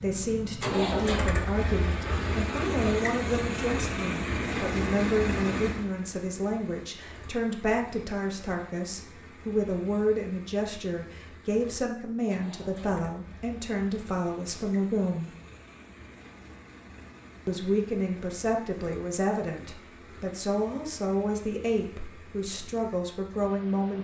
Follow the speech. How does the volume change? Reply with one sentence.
The loudness of the speech stays about the same.